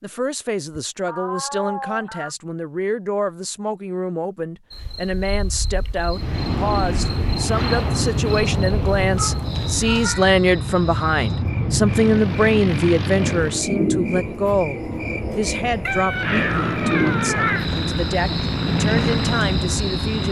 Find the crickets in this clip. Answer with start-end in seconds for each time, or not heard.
4.7-20.2.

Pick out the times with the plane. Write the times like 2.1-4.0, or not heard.
6.1-13.6, 16.1-20.2.